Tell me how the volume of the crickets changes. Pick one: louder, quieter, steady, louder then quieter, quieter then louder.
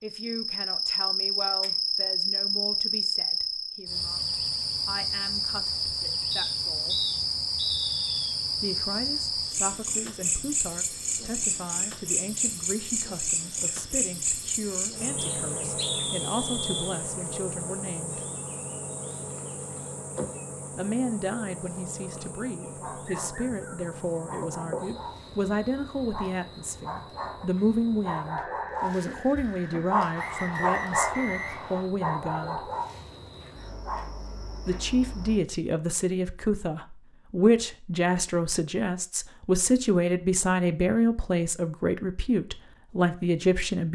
quieter.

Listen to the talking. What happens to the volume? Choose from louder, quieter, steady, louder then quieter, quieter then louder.
louder.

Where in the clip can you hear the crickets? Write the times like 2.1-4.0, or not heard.
0.0-35.4.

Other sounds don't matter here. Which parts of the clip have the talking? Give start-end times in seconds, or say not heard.
0.0-7.0, 8.6-18.2, 20.8-32.7, 34.6-43.8.